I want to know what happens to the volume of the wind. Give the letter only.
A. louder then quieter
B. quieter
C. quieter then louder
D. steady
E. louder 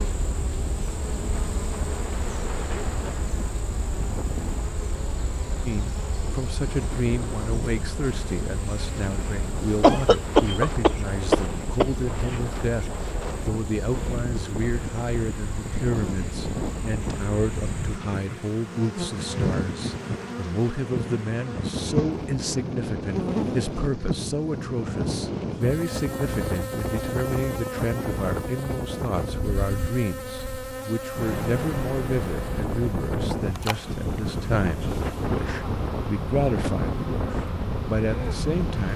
E.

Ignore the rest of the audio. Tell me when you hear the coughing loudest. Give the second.
10 s.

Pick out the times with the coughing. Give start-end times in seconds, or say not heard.
9.8-11.9.